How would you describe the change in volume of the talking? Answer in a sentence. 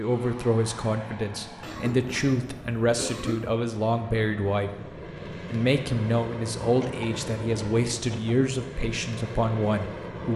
The volume of the talking stays about the same.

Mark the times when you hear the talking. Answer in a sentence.
You can hear the talking from 0.0 to 4.7 s and from 5.5 to 10.3 s.